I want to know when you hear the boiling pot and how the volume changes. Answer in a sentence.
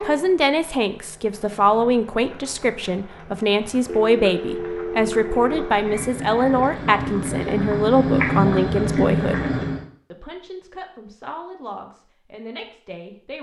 You can hear the boiling pot from 0.0 to 9.8 s, getting louder.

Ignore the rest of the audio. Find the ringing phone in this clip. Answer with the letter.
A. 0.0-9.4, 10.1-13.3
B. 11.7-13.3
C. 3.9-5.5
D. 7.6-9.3
C.